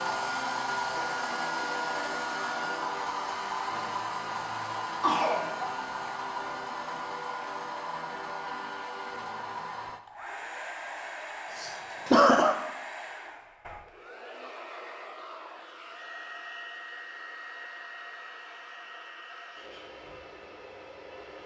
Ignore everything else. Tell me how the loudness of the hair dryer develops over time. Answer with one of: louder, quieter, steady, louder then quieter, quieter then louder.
quieter.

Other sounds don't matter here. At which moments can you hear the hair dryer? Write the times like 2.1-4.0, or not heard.
0.0-21.4.